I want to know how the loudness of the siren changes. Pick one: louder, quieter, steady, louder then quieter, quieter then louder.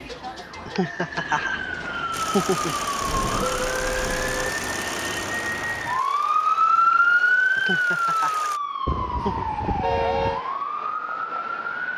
louder then quieter.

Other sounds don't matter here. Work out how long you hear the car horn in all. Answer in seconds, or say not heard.
3 s.